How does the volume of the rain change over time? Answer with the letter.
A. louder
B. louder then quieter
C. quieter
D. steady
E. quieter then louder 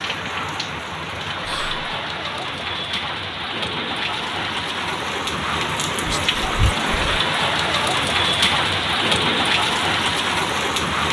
A.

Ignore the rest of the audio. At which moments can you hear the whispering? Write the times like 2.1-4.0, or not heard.
1.4-1.9, 6.0-7.0.